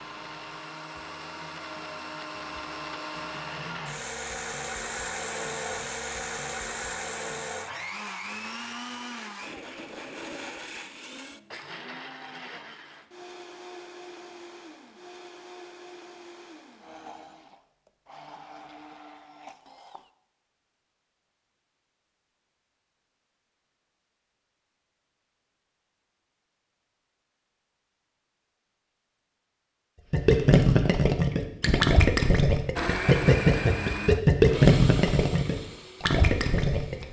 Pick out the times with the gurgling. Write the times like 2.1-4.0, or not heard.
30.1-37.0.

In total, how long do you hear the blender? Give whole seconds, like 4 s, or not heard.
24 s.